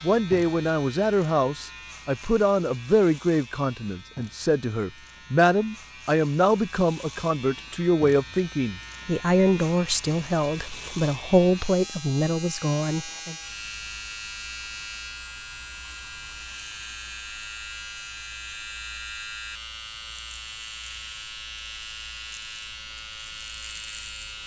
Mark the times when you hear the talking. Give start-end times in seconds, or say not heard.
0.0-13.3.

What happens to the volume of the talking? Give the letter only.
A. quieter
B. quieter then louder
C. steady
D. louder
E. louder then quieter
C.